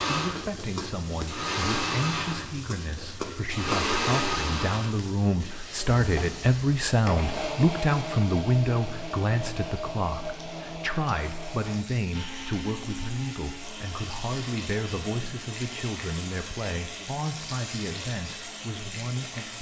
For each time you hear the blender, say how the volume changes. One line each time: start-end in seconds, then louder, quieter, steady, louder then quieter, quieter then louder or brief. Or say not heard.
0.0-19.5 quieter.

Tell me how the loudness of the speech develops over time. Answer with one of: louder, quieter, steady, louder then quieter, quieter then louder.
louder then quieter.